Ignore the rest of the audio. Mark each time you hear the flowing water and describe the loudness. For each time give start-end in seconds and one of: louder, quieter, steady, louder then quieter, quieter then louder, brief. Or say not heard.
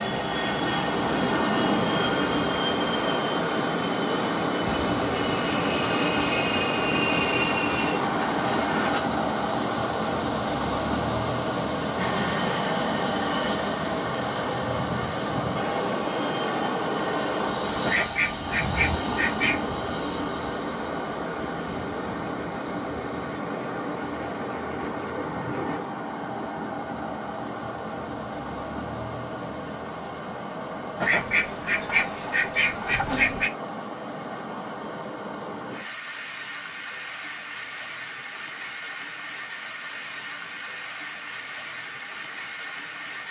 0.0-43.2 quieter.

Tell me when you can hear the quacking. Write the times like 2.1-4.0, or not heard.
17.9-19.6, 31.0-33.5.